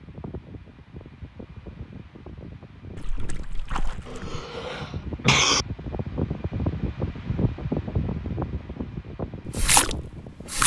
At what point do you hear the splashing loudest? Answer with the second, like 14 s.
10 s.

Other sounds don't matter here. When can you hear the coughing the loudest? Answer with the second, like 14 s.
5 s.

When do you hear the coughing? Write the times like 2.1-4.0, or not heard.
4.0-5.7.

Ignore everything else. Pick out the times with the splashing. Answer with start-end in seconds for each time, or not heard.
3.0-4.2, 9.6-10.6.